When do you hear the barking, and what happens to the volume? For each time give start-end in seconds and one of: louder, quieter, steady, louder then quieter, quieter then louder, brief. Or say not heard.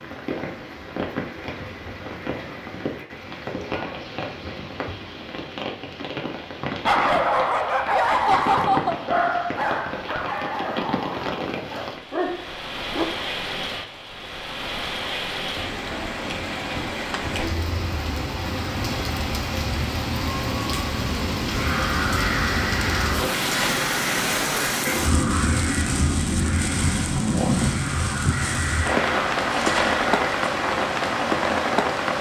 6.8-13.1 quieter.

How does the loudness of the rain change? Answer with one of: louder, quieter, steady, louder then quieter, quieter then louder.
louder.